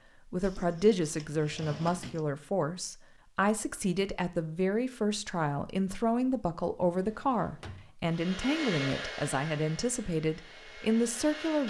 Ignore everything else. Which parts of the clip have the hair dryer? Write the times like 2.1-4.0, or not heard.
8.1-11.6.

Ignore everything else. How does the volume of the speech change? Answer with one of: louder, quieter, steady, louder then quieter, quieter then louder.
steady.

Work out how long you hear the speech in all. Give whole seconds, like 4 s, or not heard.
11 s.